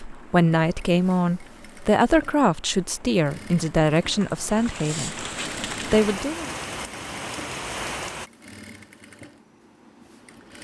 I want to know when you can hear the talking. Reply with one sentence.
You can hear the talking from 0.0 to 5.2 s and from 5.8 to 6.5 s.